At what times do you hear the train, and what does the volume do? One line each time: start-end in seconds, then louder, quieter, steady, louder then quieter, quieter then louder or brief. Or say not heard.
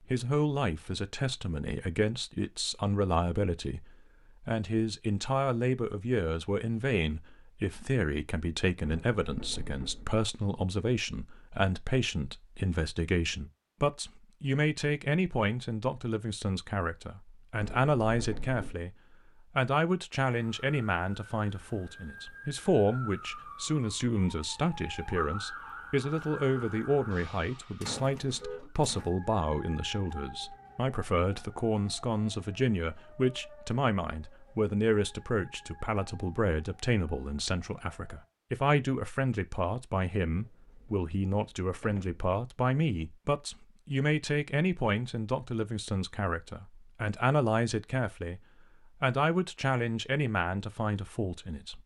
not heard.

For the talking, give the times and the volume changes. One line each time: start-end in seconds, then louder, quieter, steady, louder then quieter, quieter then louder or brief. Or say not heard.
0.1-18.9 steady
19.6-48.4 steady
49.0-51.8 brief.